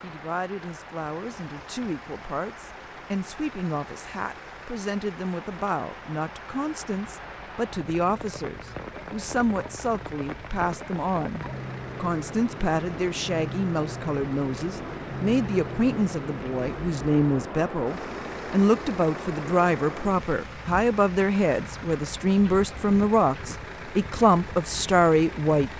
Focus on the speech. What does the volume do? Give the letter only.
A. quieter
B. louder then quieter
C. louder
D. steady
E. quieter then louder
C.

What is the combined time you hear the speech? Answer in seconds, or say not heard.
26 s.